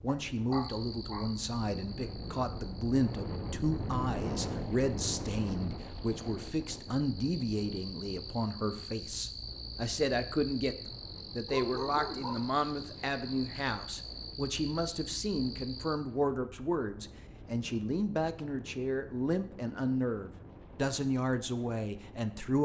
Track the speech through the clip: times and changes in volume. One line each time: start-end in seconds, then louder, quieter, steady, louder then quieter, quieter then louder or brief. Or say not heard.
0.0-22.5 steady.